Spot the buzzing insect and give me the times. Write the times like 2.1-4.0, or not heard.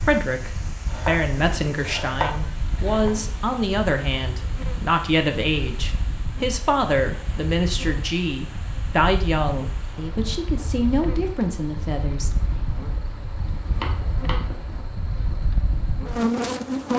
0.0-16.9.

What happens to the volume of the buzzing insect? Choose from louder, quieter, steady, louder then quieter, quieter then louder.
louder.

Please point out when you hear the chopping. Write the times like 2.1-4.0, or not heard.
0.8-3.1, 13.6-14.8.